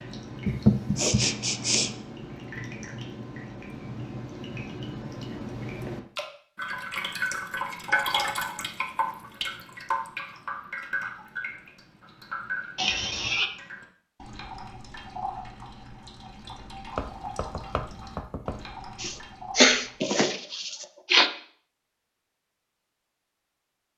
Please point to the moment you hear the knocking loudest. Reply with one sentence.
The volume of the knocking peaks at 1 second.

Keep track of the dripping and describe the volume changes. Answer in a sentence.
The loudness of the dripping goes up, then down.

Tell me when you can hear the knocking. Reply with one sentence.
You can hear the knocking from 0.5 to 1.2 s and from 16.9 to 18.6 s.